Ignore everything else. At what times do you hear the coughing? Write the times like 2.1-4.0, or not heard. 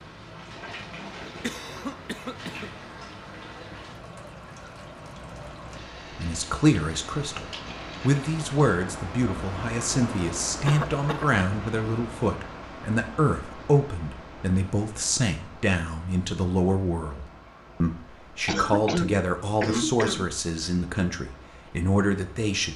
1.2-2.7, 10.7-11.4, 18.4-20.3.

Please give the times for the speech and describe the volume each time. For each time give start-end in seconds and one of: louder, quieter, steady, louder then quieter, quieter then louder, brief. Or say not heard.
6.1-22.7 steady.